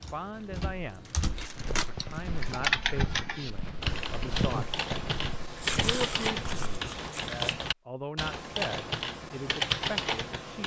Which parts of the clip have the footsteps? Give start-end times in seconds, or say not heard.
1.3-6.7.